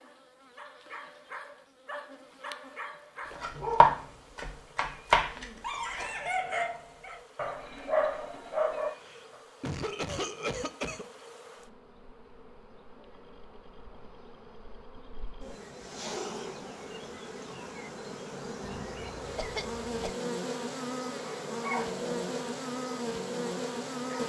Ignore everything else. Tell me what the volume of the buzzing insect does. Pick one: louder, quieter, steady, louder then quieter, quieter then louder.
louder.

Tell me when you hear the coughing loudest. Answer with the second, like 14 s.
10 s.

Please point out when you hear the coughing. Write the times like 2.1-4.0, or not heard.
5.3-6.3, 8.8-11.1, 18.9-20.1.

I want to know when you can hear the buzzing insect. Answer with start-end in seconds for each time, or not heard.
0.0-24.2.